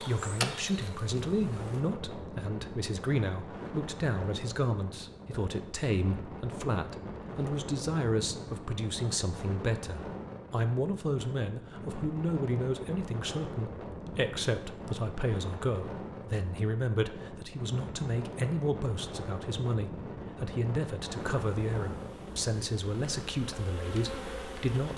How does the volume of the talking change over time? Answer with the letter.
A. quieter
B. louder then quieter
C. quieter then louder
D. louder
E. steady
E.